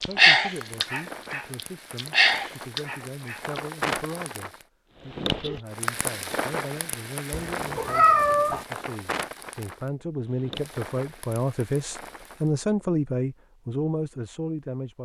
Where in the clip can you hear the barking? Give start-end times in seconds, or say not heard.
0.0-3.6.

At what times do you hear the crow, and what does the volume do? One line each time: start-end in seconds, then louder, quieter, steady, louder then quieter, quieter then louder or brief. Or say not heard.
not heard.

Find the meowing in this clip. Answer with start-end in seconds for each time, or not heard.
7.3-8.7.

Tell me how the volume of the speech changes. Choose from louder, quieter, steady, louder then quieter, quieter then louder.
louder.